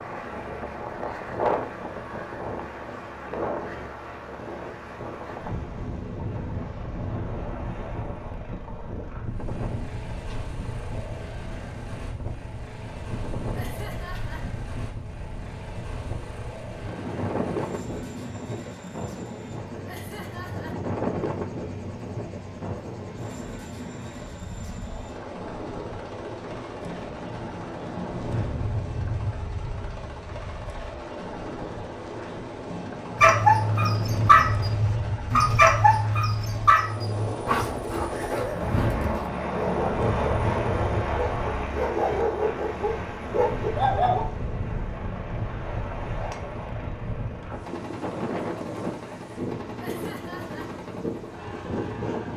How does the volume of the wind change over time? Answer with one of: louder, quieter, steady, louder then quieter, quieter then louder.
steady.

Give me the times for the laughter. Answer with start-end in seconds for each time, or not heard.
13.5-14.4, 19.9-20.8, 49.8-50.7.